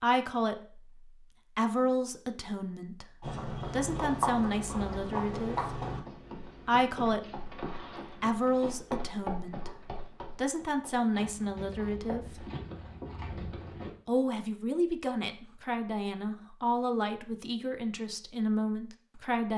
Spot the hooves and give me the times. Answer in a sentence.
You can hear the hooves from 3.2 to 13.9 s.